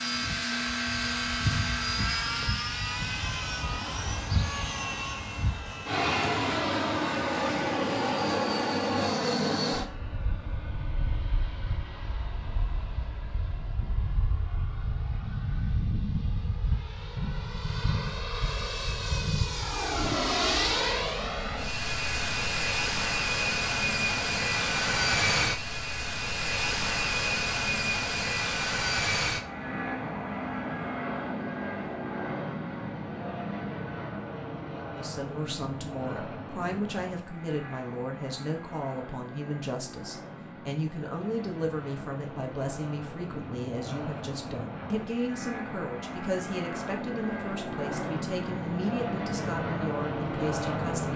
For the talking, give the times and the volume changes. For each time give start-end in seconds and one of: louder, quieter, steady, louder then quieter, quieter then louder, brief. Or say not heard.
35.0-51.1 steady.